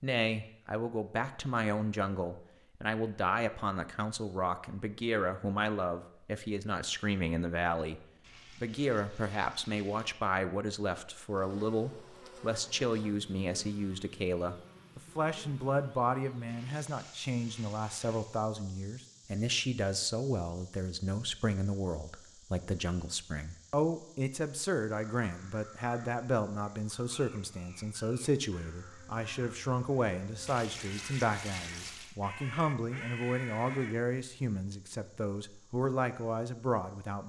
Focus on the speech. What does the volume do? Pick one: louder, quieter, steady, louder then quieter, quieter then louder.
steady.